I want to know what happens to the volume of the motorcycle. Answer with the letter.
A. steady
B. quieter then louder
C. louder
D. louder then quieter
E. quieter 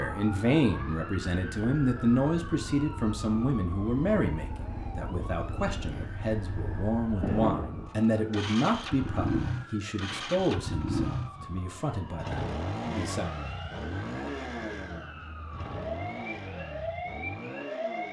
D.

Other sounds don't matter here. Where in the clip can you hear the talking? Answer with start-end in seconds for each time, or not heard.
0.0-13.2.